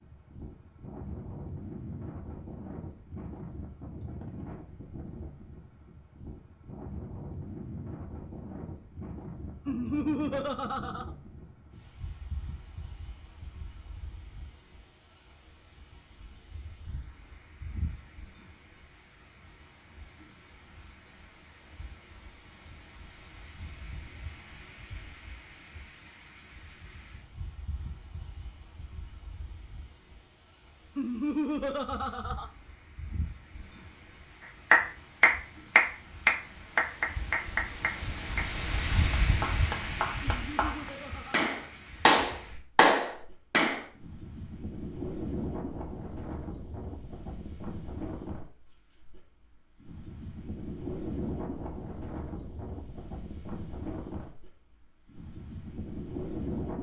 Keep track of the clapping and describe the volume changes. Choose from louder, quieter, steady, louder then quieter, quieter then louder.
quieter then louder.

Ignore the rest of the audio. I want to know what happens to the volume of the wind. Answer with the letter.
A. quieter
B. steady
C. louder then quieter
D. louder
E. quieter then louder
E.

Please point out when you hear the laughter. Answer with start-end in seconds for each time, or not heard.
9.7-11.1, 30.9-32.5, 40.2-41.5.